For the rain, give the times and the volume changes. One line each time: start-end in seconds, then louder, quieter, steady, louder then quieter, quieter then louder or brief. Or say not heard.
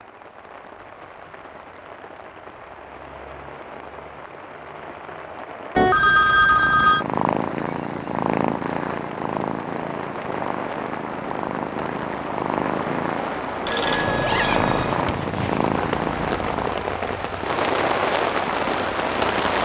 0.0-19.6 louder.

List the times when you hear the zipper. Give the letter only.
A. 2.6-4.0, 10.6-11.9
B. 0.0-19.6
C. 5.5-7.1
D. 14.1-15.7
D.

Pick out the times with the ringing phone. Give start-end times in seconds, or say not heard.
5.8-7.0, 13.7-15.0.